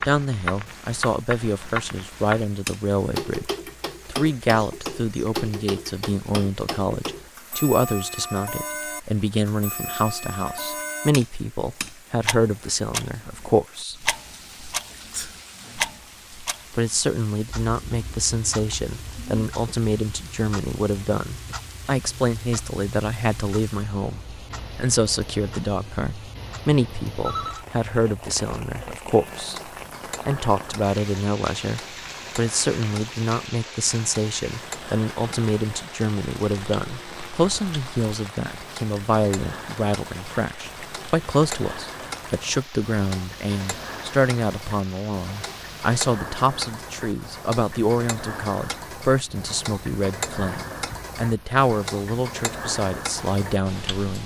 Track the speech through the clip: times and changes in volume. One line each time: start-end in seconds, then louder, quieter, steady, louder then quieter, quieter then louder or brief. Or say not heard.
0.1-13.9 steady
16.7-29.6 steady
30.2-54.2 steady.